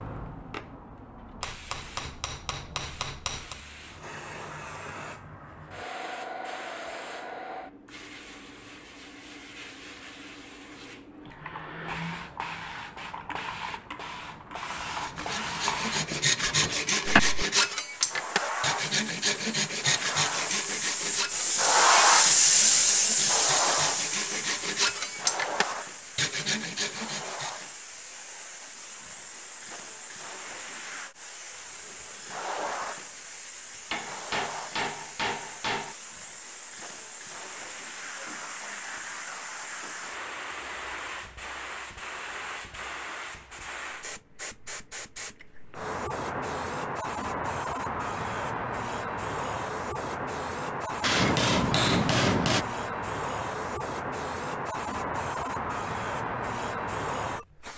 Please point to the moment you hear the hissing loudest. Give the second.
22 s.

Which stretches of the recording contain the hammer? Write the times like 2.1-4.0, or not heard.
1.4-3.6, 33.9-36.0, 51.0-52.6.